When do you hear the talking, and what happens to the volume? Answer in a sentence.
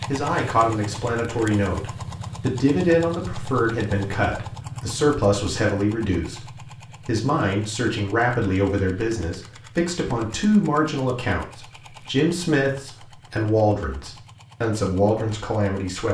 You can hear the talking from 0.1 to 16.1 s, at a steady volume.